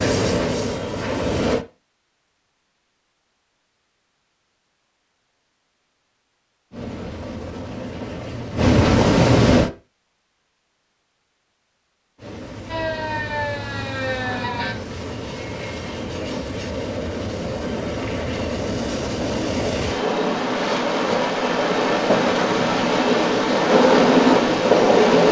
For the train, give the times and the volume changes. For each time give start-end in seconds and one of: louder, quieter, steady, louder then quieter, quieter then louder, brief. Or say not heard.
0.0-1.6 brief
6.7-9.7 brief
12.2-25.2 louder.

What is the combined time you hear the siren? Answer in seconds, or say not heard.
2 s.